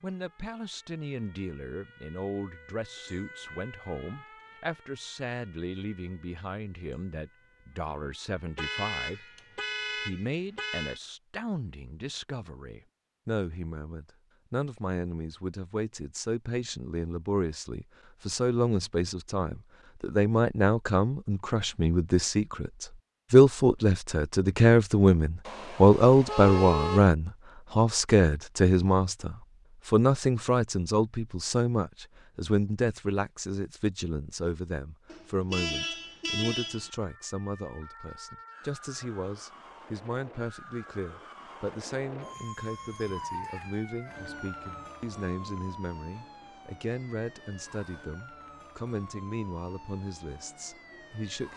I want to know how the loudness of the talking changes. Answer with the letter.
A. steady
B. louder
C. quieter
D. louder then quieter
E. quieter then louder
D.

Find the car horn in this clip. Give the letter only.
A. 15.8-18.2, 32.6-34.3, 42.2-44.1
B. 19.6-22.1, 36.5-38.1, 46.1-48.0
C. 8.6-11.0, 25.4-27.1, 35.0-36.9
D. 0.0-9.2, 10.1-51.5
C.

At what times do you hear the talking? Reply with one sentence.
The talking can be heard from 0.0 to 9.2 s and from 10.1 to 51.5 s.